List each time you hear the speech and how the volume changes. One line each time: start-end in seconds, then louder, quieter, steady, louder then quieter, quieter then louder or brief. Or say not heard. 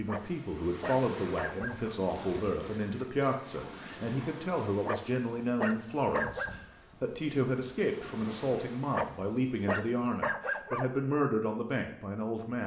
0.0-12.6 steady.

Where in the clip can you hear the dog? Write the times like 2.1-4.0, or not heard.
0.1-1.9, 4.8-6.5, 8.9-10.8.